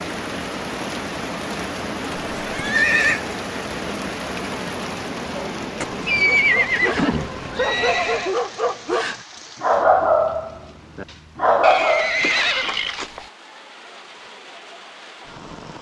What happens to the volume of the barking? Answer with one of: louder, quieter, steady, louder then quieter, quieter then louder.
louder.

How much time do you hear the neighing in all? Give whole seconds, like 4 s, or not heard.
5 s.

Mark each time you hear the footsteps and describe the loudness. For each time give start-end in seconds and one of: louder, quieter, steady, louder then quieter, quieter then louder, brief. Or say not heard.
not heard.